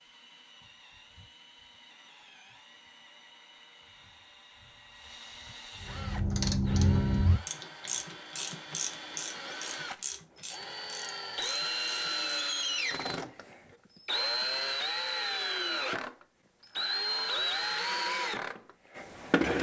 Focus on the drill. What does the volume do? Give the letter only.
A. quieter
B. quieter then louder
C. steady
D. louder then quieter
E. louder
E.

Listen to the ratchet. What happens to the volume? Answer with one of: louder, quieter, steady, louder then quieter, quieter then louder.
quieter.